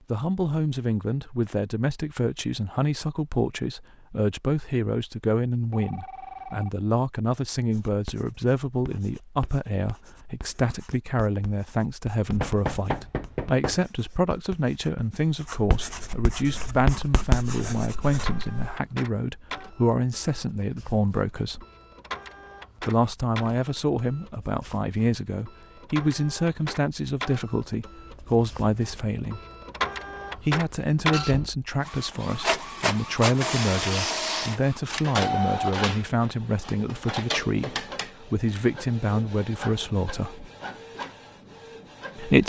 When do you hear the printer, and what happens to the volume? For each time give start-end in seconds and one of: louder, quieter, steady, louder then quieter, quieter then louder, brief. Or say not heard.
16.4-42.4 louder then quieter.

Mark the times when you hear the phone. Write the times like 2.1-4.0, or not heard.
5.7-6.8.